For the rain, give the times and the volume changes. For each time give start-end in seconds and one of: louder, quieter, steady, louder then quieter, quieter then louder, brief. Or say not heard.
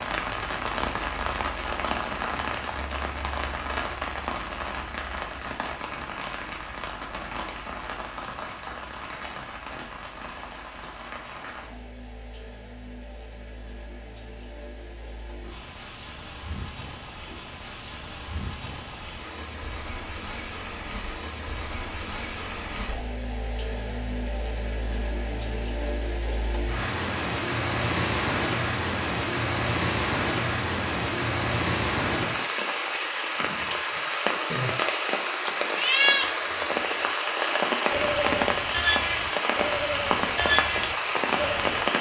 0.0-41.9 quieter then louder.